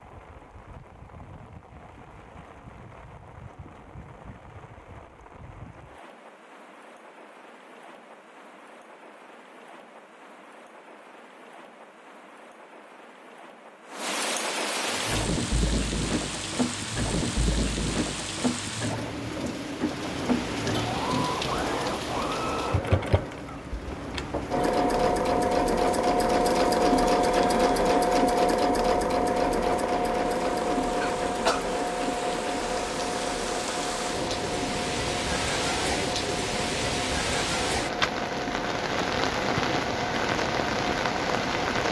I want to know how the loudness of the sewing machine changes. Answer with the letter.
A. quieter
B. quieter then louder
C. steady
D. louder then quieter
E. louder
D.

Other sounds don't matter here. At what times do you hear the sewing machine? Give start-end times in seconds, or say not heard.
14.8-41.8.